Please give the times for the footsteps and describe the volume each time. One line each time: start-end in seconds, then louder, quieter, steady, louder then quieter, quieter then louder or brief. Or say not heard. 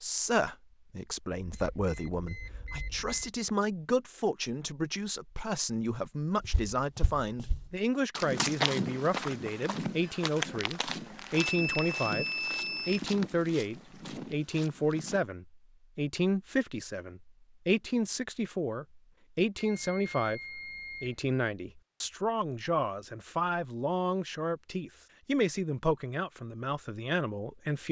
6.4-15.2 louder then quieter.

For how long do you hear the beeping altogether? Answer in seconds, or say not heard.
5 s.